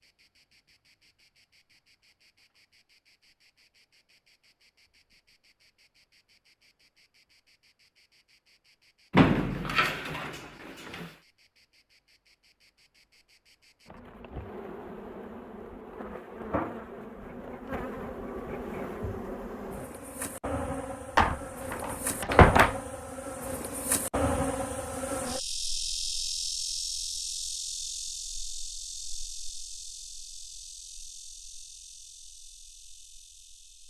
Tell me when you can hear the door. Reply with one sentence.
The door can be heard from 9.1 to 11.1 s and from 21.1 to 22.8 s.